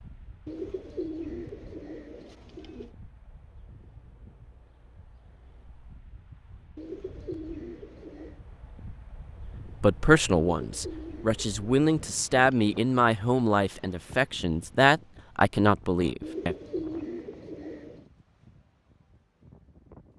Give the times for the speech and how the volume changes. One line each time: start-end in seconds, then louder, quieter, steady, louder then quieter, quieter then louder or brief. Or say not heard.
9.8-16.6 steady.